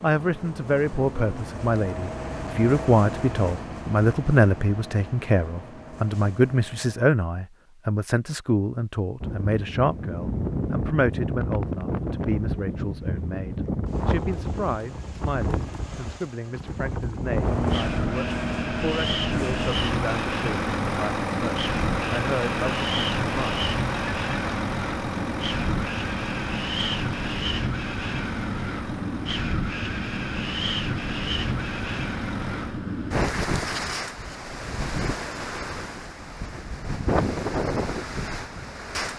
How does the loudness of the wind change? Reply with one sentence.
The volume of the wind stays about the same.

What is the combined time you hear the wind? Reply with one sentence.
The wind can be heard for 30 seconds in total.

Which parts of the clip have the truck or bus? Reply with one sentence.
You can hear the truck or bus from 0.0 to 7.2 s and from 17.2 to 32.8 s.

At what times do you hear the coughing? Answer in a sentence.
The coughing can't be heard in this clip.